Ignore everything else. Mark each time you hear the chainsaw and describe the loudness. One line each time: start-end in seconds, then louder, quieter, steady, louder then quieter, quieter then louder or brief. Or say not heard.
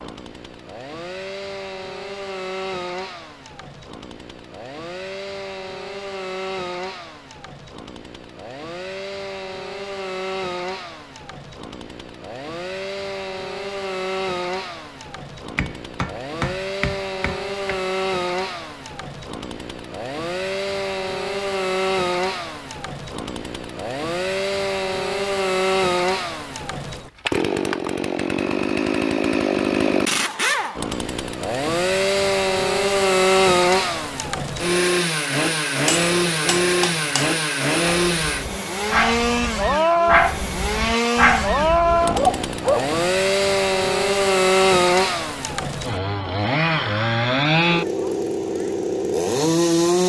0.0-50.0 louder.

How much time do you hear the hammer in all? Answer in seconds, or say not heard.
4 s.